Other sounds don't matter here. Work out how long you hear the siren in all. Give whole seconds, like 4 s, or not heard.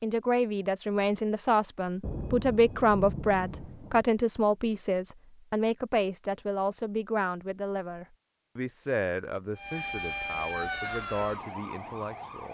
3 s.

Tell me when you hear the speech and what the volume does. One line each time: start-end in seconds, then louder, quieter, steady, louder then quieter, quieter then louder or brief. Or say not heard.
0.0-12.4 quieter.